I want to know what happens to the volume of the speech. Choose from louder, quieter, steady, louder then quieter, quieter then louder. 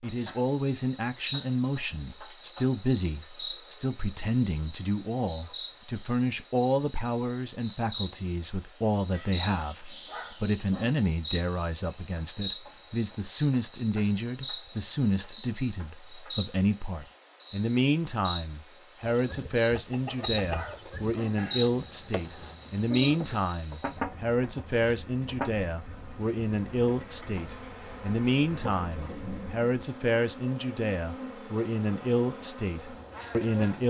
steady.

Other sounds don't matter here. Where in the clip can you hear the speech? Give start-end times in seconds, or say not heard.
0.0-33.8.